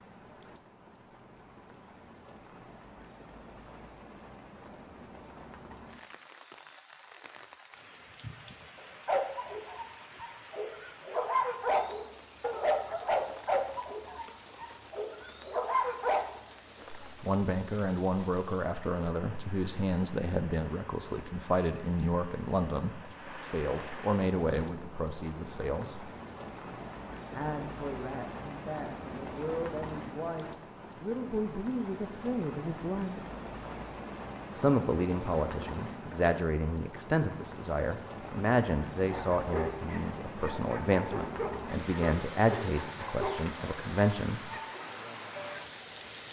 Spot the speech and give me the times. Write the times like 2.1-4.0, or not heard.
17.1-26.1, 27.3-33.2, 34.5-44.6.